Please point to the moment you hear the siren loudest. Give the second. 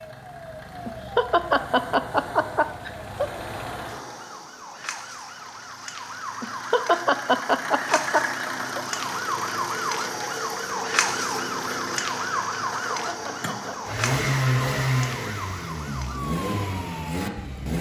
11 s.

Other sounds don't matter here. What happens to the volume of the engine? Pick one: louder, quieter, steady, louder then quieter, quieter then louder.
louder.